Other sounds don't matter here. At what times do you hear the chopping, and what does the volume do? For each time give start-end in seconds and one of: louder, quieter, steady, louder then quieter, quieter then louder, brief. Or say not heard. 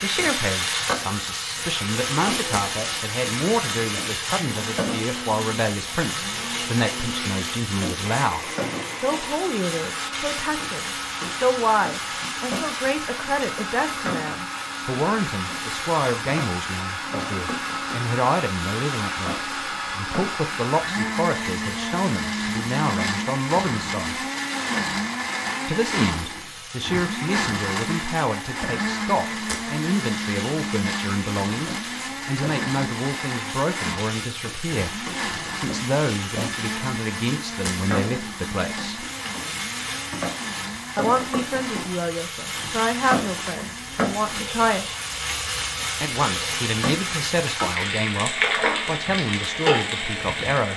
not heard.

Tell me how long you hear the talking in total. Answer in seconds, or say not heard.
46 s.